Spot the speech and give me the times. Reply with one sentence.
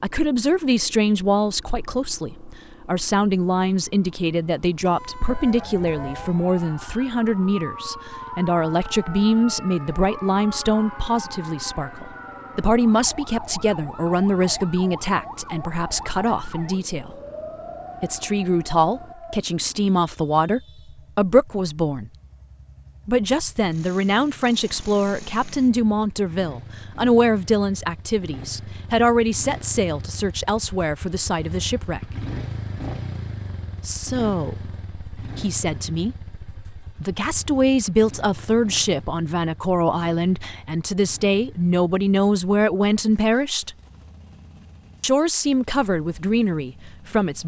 The speech can be heard from 0.0 to 17.1 s, from 18.0 to 22.1 s, from 23.1 to 32.0 s, from 33.9 to 43.8 s and from 45.0 to 47.4 s.